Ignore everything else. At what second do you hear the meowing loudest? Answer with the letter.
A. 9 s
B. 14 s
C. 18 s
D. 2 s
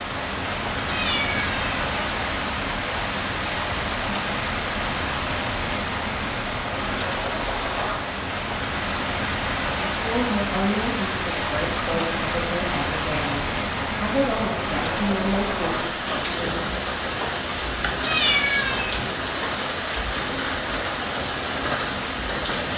C.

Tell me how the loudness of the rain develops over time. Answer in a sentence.
The loudness of the rain stays about the same.